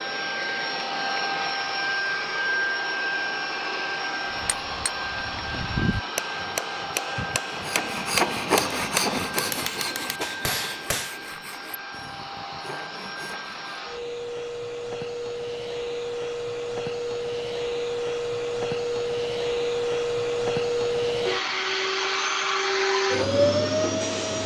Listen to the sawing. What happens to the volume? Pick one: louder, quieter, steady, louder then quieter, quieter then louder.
quieter.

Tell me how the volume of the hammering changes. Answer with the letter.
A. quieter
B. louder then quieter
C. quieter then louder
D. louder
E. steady
E.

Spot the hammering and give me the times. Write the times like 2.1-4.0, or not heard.
4.3-11.2.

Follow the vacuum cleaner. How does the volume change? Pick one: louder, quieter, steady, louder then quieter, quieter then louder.
quieter then louder.